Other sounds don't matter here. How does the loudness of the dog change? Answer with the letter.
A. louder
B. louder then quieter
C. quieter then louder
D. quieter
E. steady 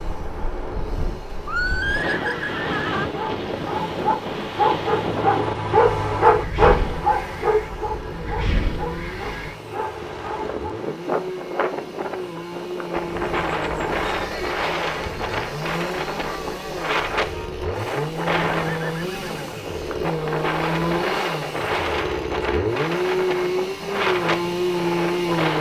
B.